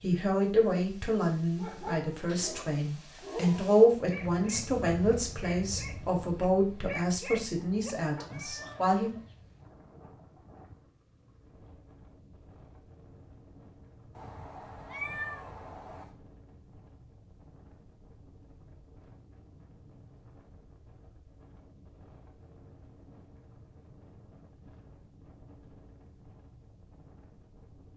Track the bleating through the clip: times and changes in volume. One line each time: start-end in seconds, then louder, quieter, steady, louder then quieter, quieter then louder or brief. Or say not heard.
not heard.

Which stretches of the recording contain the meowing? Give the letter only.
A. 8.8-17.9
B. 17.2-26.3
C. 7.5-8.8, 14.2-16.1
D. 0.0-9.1
C.